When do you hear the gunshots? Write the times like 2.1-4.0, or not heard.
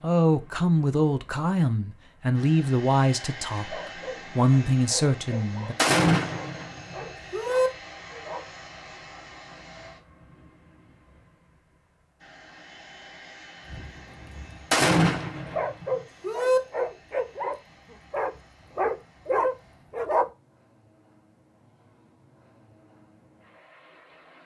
5.8-7.7, 14.7-16.6.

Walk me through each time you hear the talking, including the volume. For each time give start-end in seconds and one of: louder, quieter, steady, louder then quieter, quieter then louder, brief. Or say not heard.
0.0-5.8 quieter then louder.